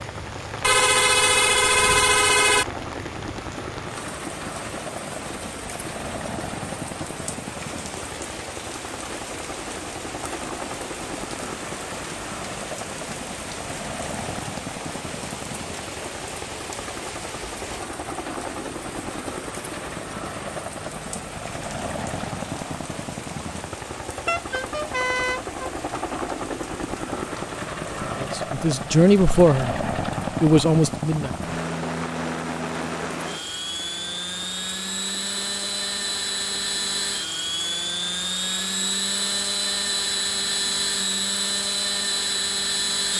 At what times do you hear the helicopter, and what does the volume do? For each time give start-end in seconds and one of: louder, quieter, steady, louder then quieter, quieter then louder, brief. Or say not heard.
0.0-43.1 louder.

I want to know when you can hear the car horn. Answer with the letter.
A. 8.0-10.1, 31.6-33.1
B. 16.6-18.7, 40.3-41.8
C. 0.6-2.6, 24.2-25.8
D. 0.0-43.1
C.